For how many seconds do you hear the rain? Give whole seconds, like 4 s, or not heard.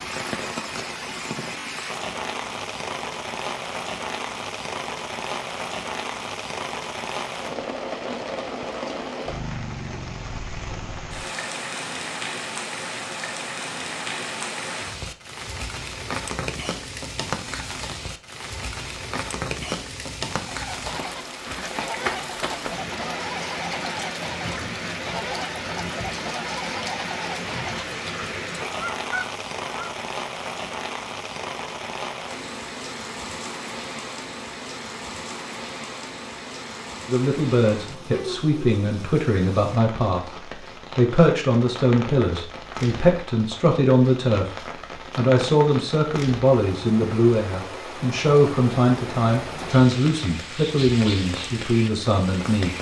53 s.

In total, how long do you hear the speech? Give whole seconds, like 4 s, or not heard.
15 s.